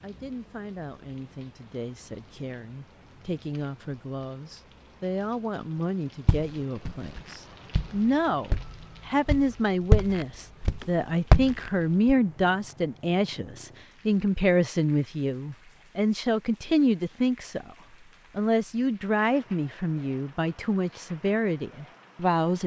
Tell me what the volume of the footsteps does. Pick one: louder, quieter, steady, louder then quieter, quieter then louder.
louder then quieter.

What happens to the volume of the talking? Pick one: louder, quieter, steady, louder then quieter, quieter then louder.
louder.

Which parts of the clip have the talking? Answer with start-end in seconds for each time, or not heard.
0.0-17.8, 18.4-22.6.